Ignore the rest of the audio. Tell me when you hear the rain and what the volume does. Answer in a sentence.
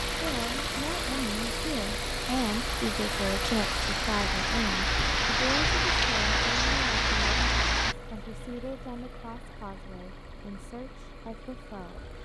You can hear the rain from 0.0 to 8.0 s, getting louder.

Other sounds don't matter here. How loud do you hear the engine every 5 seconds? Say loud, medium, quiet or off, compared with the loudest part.
loud, medium, quiet.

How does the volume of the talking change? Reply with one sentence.
The volume of the talking goes down.